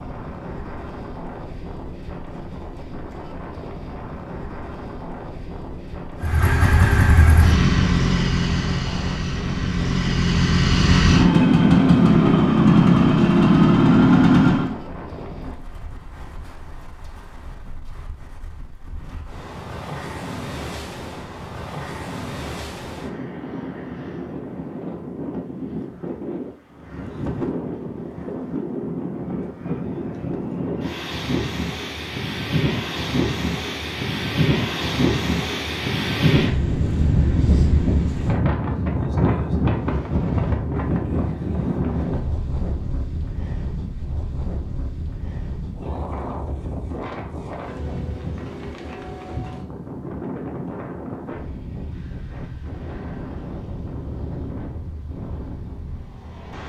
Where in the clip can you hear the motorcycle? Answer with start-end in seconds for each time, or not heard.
6.2-14.8.